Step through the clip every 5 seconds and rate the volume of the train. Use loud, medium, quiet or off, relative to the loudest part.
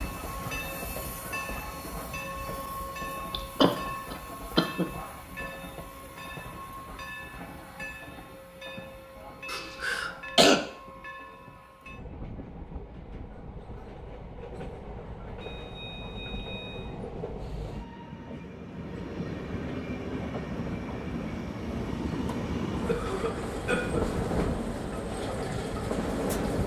medium, medium, quiet, medium, loud, loud.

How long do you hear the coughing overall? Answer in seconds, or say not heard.
4 s.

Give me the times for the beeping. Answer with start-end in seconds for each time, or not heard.
15.4-17.0.